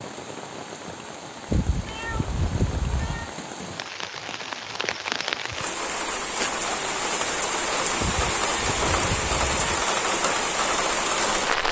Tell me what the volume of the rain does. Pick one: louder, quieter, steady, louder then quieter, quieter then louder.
louder.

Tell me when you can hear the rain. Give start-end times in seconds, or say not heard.
0.0-11.6.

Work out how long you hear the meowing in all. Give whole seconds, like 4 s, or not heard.
4 s.